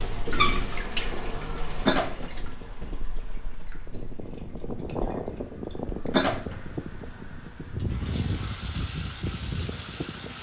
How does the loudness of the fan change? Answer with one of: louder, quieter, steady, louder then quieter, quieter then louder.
louder.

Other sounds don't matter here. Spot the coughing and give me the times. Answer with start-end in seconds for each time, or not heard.
1.9-2.5, 6.1-7.8.